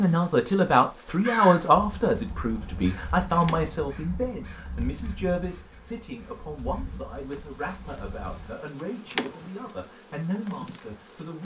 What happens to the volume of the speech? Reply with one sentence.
The volume of the speech goes down.